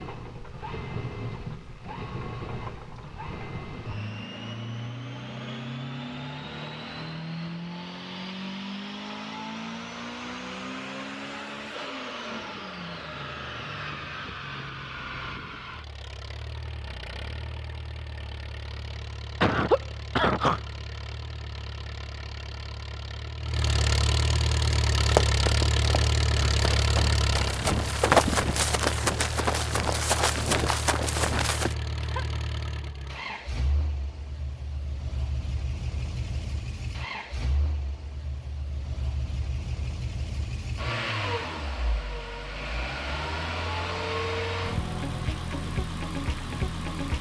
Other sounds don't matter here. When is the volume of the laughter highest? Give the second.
20 s.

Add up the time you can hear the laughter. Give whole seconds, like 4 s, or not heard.
2 s.